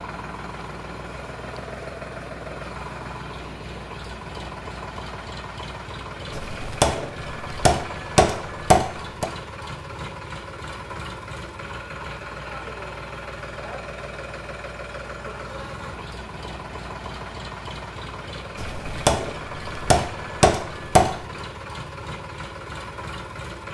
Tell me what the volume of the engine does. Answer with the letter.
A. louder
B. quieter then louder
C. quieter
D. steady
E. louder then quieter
D.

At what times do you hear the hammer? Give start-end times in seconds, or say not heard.
6.3-9.3, 18.6-21.2.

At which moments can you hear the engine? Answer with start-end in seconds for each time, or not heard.
0.0-23.6.